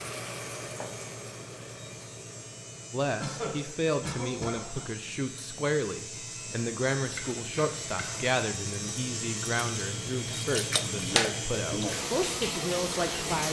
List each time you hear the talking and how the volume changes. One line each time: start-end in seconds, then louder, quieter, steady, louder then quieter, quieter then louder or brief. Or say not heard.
2.9-13.4 steady.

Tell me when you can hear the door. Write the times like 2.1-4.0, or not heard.
not heard.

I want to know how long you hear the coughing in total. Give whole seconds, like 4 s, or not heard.
3 s.